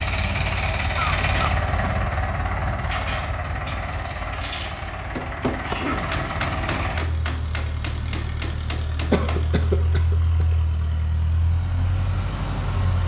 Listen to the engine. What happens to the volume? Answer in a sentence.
The volume of the engine goes down.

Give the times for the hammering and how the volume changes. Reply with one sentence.
The hammering can be heard from 5.2 to 9.6 s, getting quieter.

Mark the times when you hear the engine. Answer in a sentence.
The engine can be heard from 0.0 to 13.0 s.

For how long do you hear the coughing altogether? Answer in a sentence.
You can hear the coughing for 3 seconds altogether.